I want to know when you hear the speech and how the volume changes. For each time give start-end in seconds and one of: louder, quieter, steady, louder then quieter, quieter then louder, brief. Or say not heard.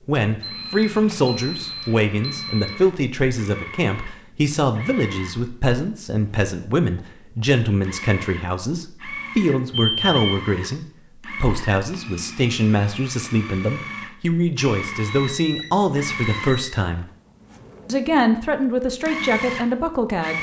0.1-17.1 steady
17.9-20.3 brief.